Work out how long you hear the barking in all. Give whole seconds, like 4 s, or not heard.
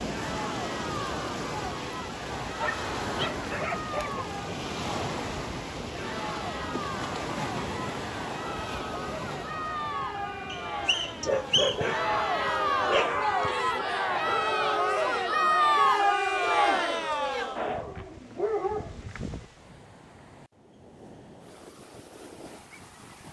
6 s.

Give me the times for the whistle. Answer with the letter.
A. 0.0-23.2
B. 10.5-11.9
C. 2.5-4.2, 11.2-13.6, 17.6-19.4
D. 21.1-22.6
B.